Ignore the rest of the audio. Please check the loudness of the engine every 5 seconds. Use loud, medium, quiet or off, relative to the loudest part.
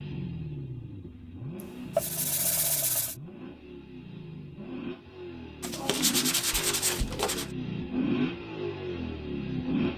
medium, loud.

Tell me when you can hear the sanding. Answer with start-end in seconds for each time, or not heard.
1.6-3.1, 5.6-7.5.